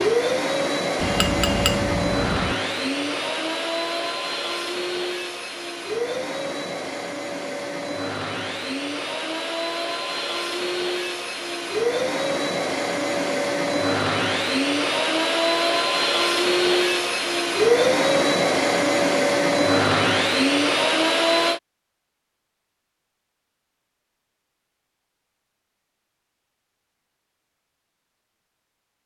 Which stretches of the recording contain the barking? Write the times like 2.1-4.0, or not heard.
not heard.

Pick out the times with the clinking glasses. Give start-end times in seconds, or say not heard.
1.0-2.5.